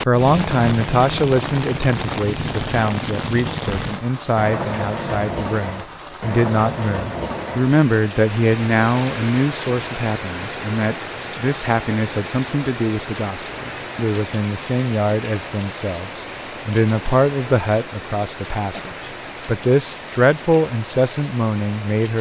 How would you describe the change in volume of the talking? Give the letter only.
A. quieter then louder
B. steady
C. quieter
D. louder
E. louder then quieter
B.